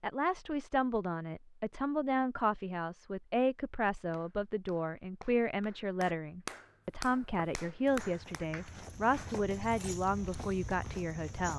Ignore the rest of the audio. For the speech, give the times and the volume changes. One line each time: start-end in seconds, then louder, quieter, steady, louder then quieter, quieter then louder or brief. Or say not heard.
0.0-11.5 steady.